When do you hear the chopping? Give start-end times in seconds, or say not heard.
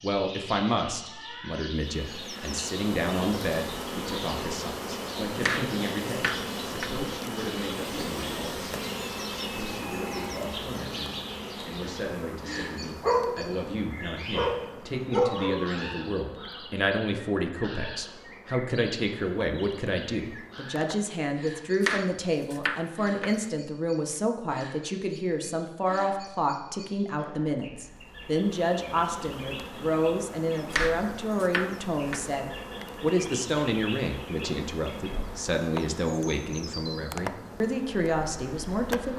5.4-7.0, 21.8-23.5, 30.7-32.4.